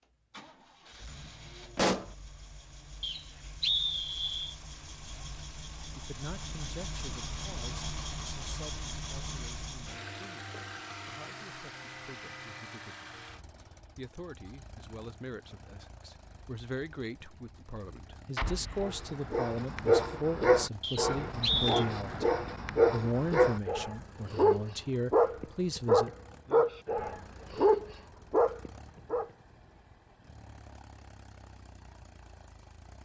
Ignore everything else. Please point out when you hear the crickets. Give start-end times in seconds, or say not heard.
not heard.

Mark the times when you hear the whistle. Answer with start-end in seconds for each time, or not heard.
3.0-4.5, 20.8-21.9.